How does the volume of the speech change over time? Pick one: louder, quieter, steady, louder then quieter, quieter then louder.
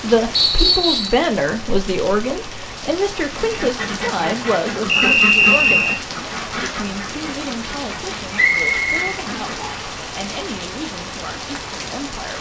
quieter.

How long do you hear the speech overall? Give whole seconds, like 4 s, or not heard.
12 s.